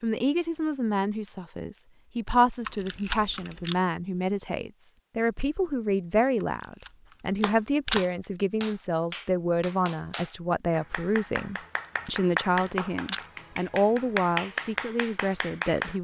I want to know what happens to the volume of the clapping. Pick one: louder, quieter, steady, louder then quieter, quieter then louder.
quieter then louder.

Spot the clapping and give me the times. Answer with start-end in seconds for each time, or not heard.
7.4-15.9.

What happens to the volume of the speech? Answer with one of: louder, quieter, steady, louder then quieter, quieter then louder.
steady.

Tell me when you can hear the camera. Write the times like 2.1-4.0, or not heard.
2.6-3.8, 6.4-8.1, 11.6-13.2.